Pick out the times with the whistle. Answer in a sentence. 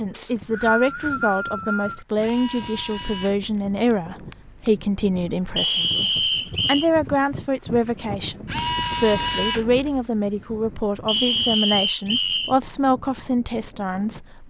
You can hear the whistle from 0.1 to 2.0 s, from 5.5 to 6.8 s and from 11.1 to 12.6 s.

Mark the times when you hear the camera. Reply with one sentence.
You can hear the camera from 2.2 to 4.8 s and from 8.4 to 10.1 s.